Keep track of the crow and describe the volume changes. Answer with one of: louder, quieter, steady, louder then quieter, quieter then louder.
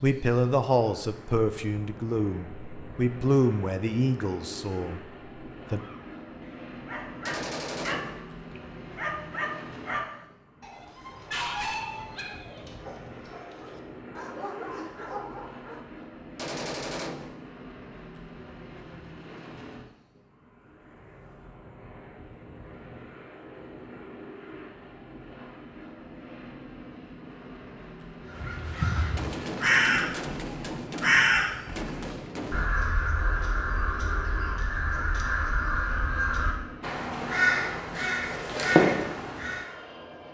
quieter then louder.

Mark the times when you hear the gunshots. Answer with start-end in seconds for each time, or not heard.
7.2-8.2, 16.4-17.4, 29.1-32.7.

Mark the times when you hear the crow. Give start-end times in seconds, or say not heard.
28.3-39.7.